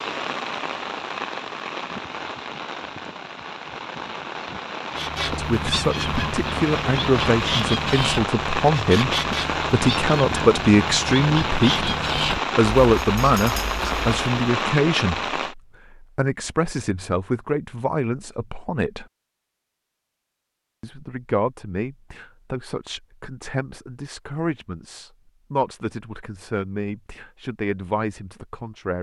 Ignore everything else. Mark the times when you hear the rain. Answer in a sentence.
You can hear the rain from 0.0 to 15.6 s.